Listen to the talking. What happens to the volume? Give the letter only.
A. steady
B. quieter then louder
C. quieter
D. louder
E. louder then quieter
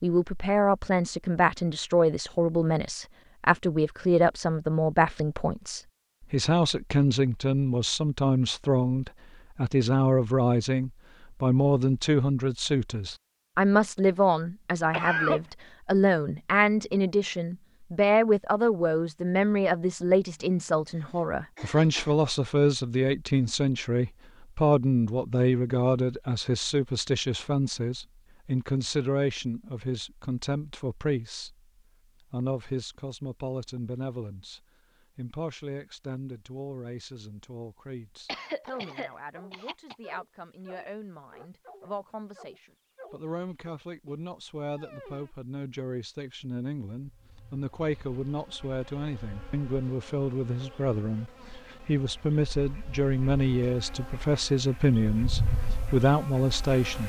B.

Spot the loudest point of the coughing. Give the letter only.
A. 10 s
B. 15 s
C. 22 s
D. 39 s
B.